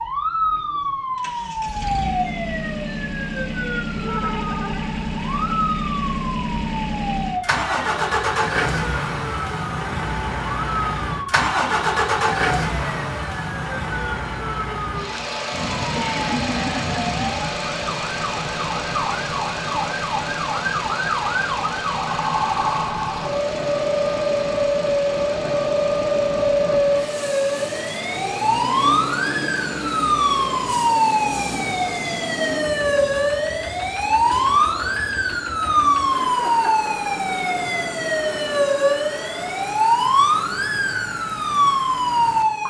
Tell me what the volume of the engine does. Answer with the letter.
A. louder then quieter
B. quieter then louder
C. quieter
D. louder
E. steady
C.